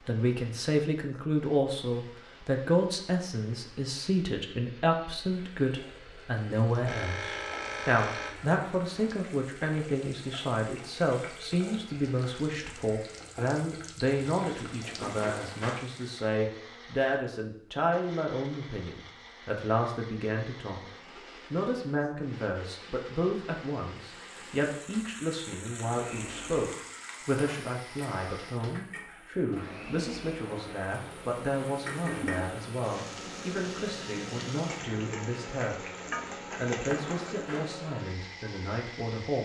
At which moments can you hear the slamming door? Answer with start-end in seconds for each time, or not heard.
15.0-15.8, 36.9-37.7.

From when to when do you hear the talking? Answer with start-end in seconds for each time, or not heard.
0.1-35.9, 36.5-39.3.